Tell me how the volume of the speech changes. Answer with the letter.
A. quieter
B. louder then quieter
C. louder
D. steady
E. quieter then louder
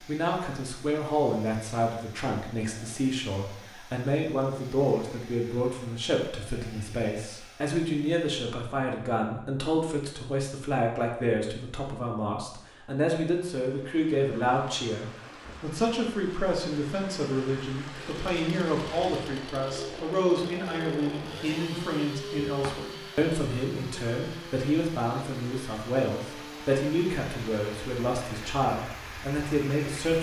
D.